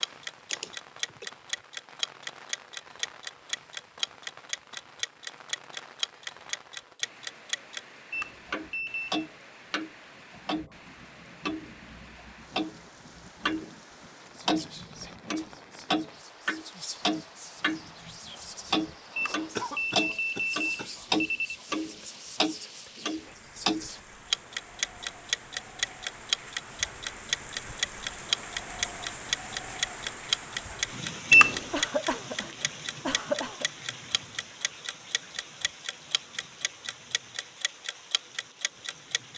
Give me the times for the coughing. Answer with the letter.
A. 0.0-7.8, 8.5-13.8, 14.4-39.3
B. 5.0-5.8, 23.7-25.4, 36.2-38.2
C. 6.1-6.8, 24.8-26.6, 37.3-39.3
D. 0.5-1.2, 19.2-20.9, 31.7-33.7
D.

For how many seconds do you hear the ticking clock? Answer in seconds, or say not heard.
38 s.